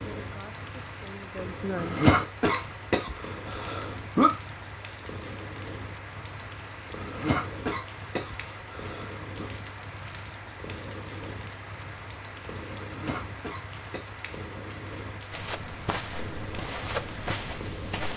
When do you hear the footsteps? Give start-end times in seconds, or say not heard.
15.3-18.1.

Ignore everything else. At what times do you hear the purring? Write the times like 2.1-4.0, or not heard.
0.0-18.1.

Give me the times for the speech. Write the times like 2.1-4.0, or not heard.
0.0-2.0.